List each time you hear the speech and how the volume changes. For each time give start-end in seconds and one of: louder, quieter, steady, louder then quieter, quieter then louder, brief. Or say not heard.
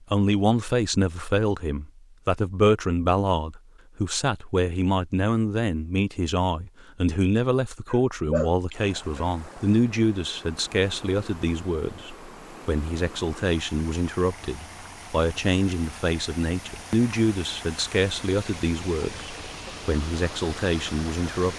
0.1-21.5 steady.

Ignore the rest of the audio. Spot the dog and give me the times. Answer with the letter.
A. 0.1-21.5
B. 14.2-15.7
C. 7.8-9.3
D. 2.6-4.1
C.